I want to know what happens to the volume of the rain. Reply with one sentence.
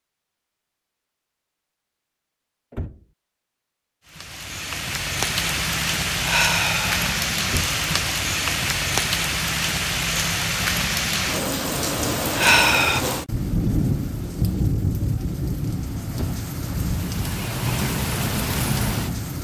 The volume of the rain stays about the same.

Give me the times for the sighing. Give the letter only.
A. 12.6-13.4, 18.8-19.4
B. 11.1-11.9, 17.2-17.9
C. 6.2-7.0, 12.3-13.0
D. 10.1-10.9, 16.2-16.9
C.